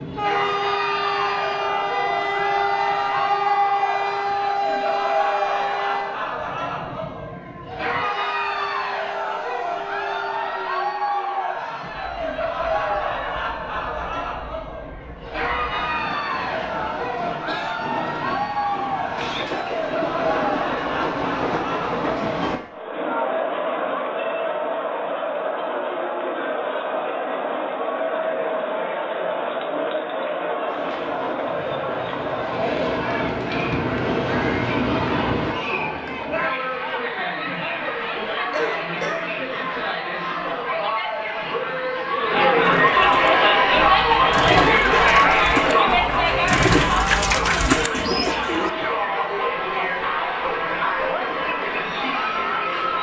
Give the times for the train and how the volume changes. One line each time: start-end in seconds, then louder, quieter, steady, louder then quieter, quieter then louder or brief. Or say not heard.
0.0-22.6 quieter then louder
30.6-35.5 louder.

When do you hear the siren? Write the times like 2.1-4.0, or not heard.
not heard.